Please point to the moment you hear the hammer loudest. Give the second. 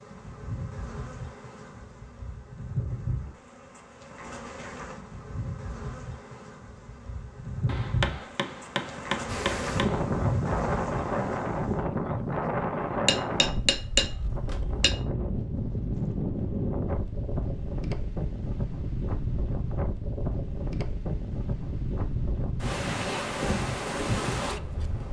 14 s.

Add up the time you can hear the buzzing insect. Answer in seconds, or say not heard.
12 s.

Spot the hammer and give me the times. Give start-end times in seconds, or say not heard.
7.7-10.0, 13.1-14.9.